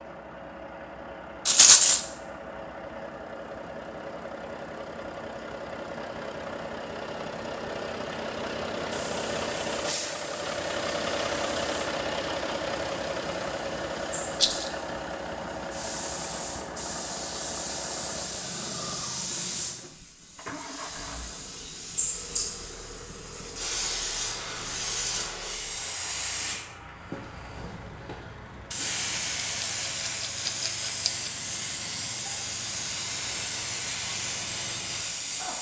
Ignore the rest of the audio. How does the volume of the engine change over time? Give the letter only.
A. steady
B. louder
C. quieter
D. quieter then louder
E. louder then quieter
E.